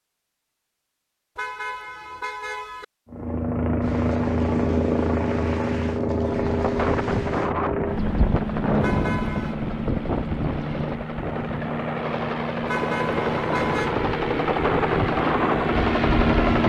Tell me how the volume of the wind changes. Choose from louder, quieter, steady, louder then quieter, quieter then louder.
quieter then louder.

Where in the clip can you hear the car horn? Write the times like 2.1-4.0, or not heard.
1.4-2.9, 8.8-9.6, 12.7-13.9.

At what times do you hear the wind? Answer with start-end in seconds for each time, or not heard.
6.5-16.6.